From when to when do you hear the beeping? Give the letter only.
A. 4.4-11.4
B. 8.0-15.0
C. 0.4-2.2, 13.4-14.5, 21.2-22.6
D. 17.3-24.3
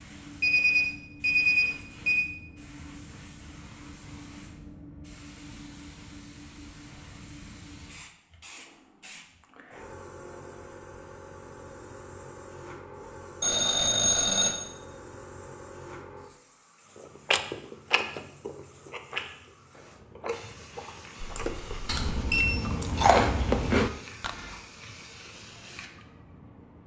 C.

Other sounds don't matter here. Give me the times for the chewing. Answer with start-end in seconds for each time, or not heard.
17.3-24.3.